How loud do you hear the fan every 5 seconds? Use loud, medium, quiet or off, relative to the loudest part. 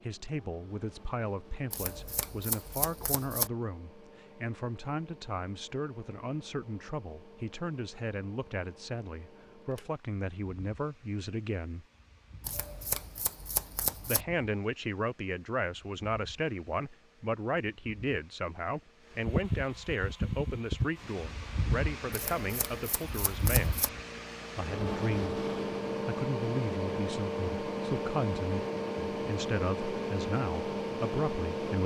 quiet, quiet, quiet, medium, loud, loud, loud.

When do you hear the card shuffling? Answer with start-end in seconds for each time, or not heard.
1.7-3.5, 12.4-14.2, 22.1-23.9.